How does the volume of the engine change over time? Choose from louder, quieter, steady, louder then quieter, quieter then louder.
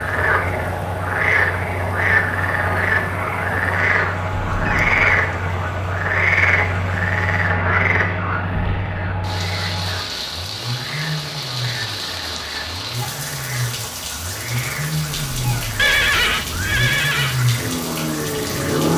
louder.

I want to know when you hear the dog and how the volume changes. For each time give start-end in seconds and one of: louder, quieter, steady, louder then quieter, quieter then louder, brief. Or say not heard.
not heard.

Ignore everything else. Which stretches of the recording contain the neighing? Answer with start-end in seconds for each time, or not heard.
15.8-17.4.